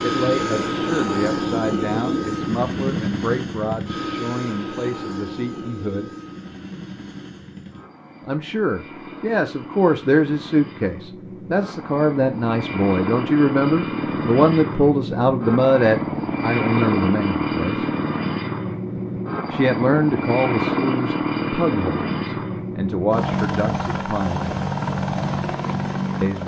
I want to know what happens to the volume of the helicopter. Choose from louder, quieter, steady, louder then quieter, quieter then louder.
quieter then louder.